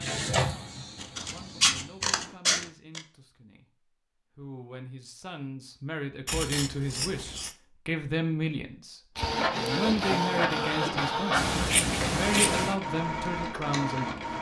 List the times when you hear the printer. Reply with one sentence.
The printer can be heard from 0.0 to 2.0 s and from 9.2 to 14.3 s.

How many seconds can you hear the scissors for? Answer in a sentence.
The scissors can be heard for 5 seconds in total.